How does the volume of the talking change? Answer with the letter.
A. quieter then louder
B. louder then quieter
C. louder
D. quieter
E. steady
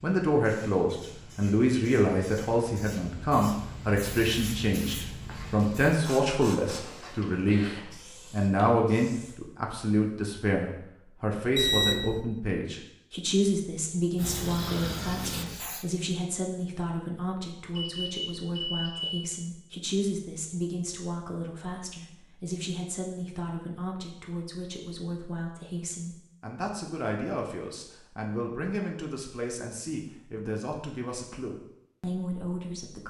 D.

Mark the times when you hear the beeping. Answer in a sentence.
You can hear the beeping from 11.6 to 12.2 s and from 17.8 to 19.3 s.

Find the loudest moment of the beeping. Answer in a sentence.
The loudest moment of the beeping is at 12 seconds.